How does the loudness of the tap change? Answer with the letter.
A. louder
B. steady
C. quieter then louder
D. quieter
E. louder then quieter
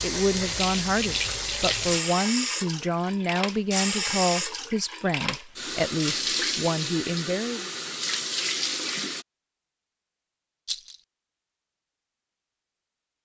B.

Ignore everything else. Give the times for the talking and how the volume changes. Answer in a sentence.
You can hear the talking from 0.0 to 7.7 s, at a steady volume.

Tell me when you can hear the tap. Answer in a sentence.
You can hear the tap from 0.0 to 9.2 s.